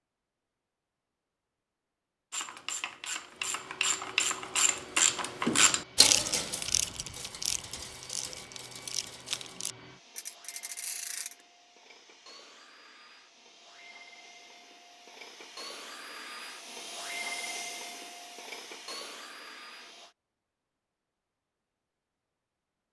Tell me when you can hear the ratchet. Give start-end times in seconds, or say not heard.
2.3-11.3.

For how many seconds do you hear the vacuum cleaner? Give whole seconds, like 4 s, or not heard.
17 s.